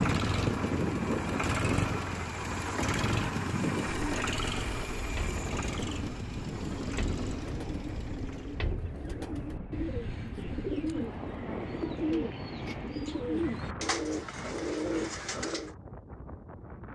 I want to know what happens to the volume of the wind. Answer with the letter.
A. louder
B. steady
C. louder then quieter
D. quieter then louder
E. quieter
E.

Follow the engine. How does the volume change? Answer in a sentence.
The loudness of the engine goes down.